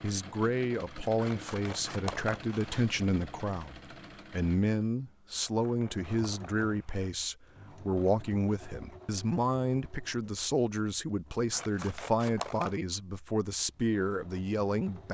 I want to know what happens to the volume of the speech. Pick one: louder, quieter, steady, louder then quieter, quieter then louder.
steady.